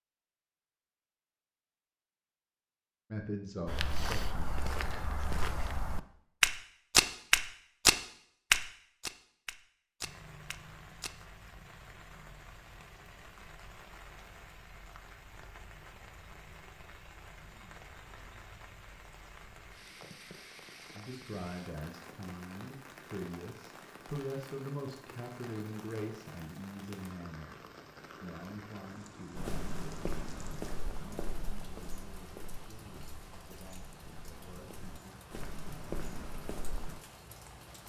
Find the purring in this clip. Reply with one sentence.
The purring can't be heard in this clip.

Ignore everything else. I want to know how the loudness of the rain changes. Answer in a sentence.
The loudness of the rain stays about the same.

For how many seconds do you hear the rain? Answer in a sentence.
You can hear the rain for 28 seconds altogether.